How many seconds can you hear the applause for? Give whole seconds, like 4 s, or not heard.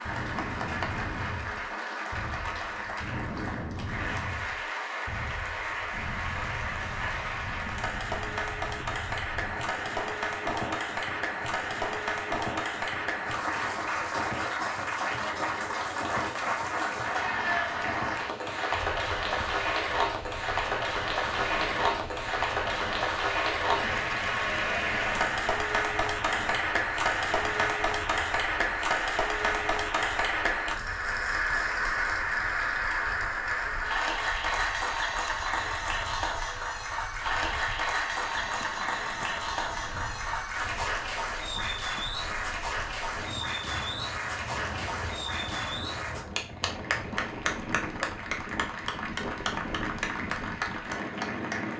52 s.